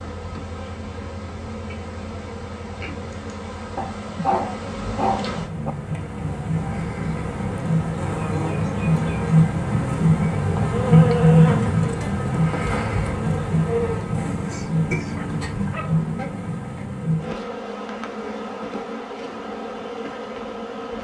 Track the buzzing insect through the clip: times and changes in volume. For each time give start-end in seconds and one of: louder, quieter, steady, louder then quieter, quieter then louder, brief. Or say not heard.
0.0-20.9 louder then quieter.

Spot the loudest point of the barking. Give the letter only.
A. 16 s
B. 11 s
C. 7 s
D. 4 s
D.